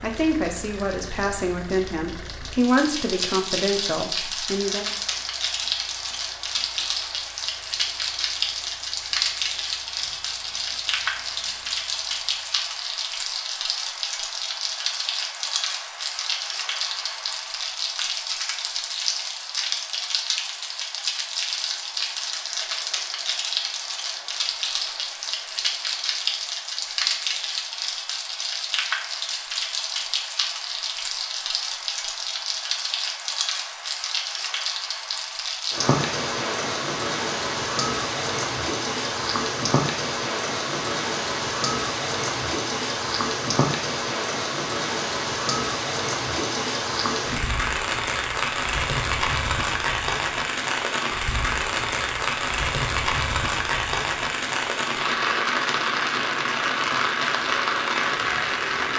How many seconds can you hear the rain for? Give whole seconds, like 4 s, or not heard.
59 s.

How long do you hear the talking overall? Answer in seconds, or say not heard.
5 s.